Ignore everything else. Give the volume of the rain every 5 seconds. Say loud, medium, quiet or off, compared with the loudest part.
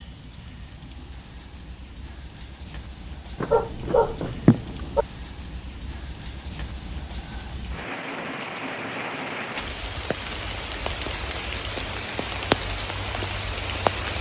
quiet, medium, loud.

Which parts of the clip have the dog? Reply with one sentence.
The dog can be heard from 3.4 to 5.0 s.